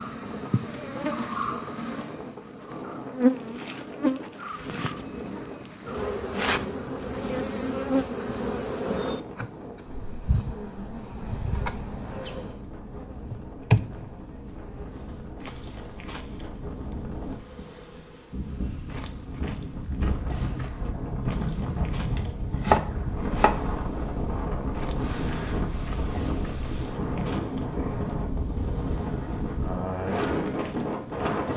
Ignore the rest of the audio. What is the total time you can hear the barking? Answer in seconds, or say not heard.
not heard.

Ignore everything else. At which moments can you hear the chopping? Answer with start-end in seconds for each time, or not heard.
22.1-23.6.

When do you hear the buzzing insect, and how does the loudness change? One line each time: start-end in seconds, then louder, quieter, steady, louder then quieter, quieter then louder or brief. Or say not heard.
0.0-31.5 quieter.